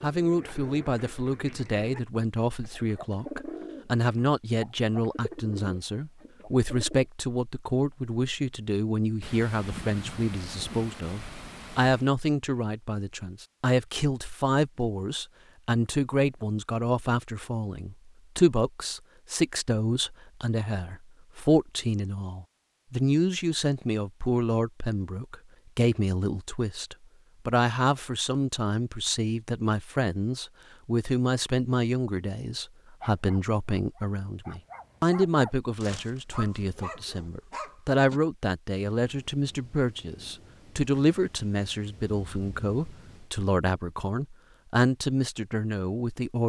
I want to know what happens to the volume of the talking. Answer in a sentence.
The volume of the talking stays about the same.